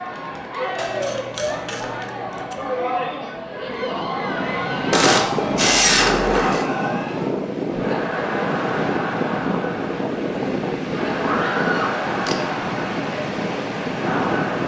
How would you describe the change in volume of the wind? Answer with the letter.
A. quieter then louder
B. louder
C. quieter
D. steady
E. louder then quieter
D.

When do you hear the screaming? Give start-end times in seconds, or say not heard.
3.5-4.9, 11.2-11.9.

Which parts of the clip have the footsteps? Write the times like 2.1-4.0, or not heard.
not heard.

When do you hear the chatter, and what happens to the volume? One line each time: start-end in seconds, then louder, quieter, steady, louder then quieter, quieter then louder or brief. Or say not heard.
0.0-14.6 steady.